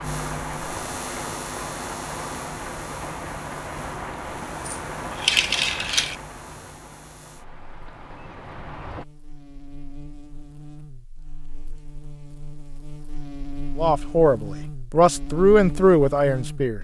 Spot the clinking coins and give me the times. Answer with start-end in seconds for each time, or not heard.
4.7-6.2.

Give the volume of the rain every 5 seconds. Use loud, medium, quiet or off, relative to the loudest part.
loud, medium, off, off.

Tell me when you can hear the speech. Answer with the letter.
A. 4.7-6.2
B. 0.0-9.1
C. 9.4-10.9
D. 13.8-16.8
D.